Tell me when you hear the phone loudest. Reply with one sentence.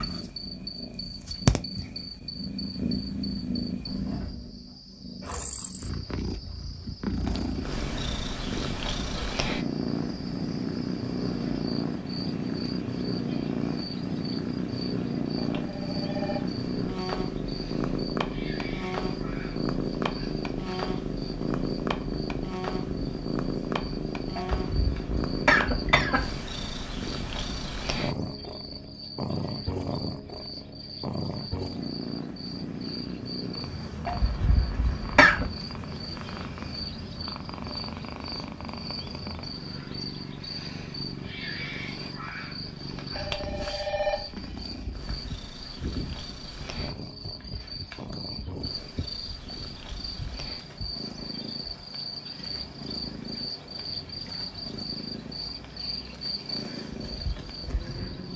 The volume of the phone peaks at 44 seconds.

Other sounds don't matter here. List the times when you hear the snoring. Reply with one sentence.
You can't hear the snoring here.